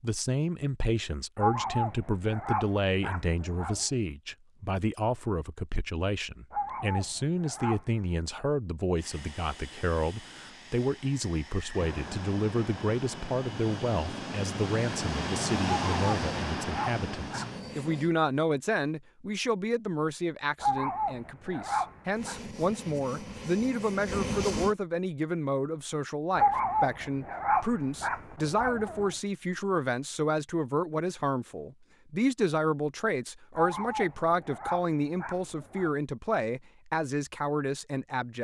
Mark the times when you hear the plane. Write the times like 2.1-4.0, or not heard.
8.9-18.1, 22.1-24.8.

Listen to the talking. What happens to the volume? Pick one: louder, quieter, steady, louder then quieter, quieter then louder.
steady.